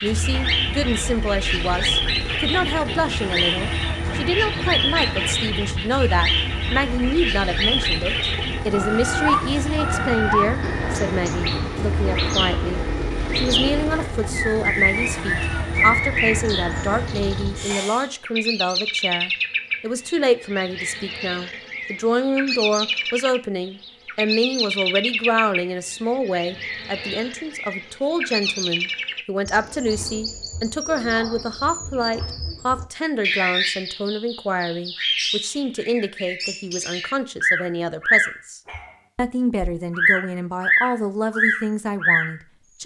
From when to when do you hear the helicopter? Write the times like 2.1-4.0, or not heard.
0.0-18.1.